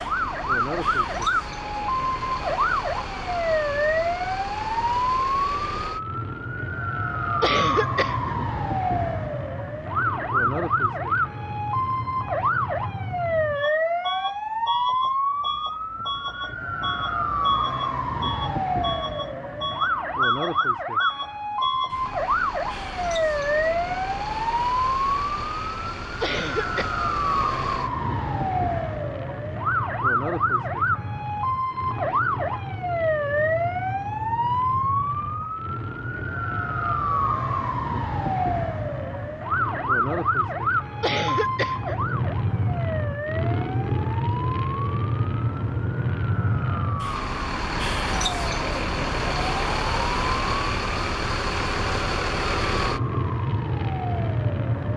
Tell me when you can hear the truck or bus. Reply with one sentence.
The truck or bus can be heard from 0.0 to 54.9 s.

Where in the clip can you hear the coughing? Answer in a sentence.
You can hear the coughing from 7.4 to 8.3 s, from 26.2 to 26.9 s and from 41.0 to 42.0 s.